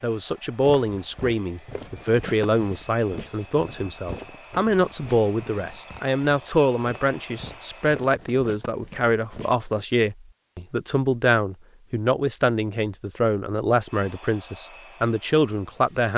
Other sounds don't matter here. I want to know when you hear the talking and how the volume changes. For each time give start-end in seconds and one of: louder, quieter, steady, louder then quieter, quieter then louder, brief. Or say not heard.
0.0-16.1 steady.